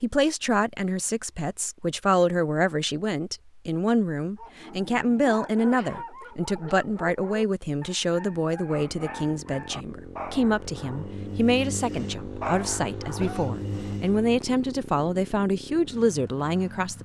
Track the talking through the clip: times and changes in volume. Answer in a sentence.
The talking can be heard from 0.0 to 17.0 s, at a steady volume.